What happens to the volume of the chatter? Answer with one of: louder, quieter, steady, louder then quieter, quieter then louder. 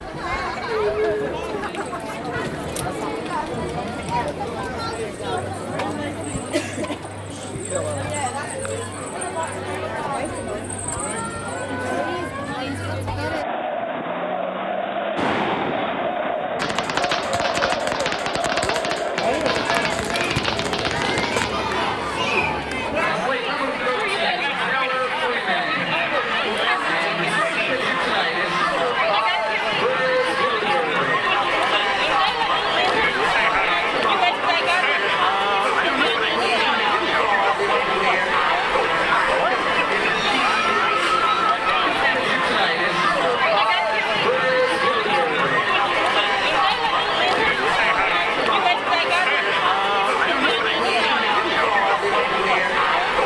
louder.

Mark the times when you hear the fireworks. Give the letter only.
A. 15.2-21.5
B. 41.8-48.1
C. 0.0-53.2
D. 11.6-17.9
A.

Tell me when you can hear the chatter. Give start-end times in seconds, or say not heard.
0.0-53.2.